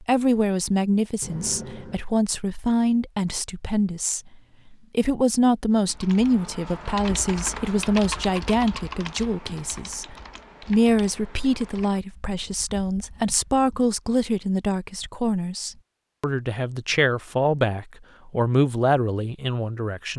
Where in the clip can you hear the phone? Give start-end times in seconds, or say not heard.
1.2-2.0.